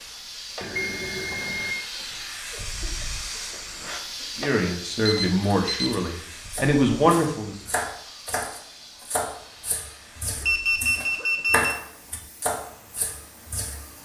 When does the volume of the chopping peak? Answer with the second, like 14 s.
12 s.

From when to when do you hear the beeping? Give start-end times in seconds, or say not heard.
0.6-1.8, 5.0-6.0, 10.4-11.8.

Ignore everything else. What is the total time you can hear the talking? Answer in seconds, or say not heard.
3 s.